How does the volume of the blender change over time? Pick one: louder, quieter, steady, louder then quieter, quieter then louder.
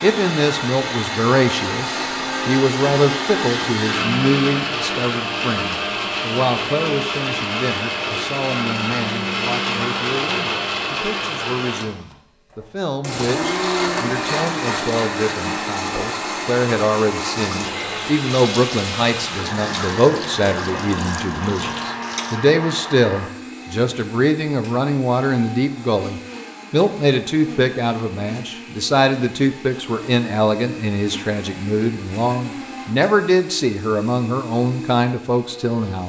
quieter.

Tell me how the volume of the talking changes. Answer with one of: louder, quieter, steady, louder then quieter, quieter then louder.
quieter then louder.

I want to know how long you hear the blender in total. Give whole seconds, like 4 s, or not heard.
36 s.